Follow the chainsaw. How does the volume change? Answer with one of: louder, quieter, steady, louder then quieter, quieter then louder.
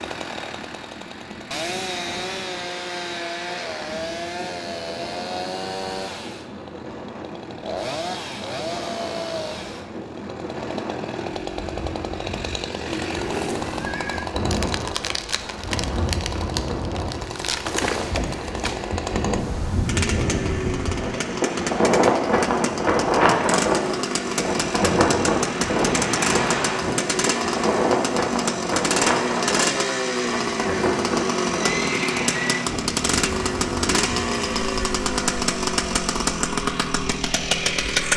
louder.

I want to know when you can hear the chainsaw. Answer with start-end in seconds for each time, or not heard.
0.0-38.1.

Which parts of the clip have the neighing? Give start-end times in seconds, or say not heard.
12.8-14.3, 31.6-32.6.